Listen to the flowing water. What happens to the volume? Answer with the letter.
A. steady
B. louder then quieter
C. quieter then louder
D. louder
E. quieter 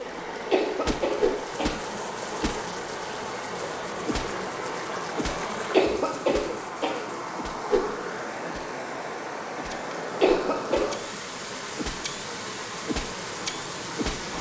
A.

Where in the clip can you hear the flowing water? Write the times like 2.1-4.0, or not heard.
0.0-14.3.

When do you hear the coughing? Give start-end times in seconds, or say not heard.
0.5-1.8, 5.7-7.2, 10.2-11.0.